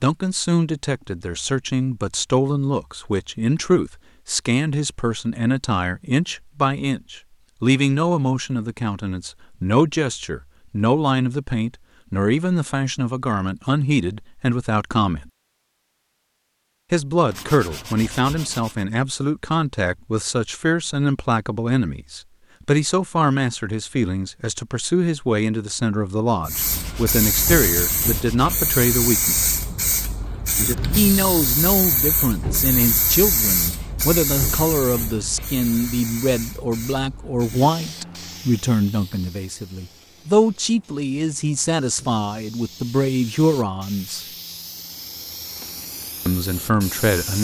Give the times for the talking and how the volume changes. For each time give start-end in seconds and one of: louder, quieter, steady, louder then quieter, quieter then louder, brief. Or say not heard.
0.0-15.3 steady
16.9-29.6 steady
30.9-44.2 steady
46.2-47.3 brief.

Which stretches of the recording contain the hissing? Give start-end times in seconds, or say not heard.
26.4-47.3.